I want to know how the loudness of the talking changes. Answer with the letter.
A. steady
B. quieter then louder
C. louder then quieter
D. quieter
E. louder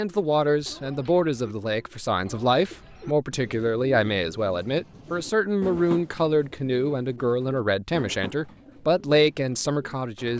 A.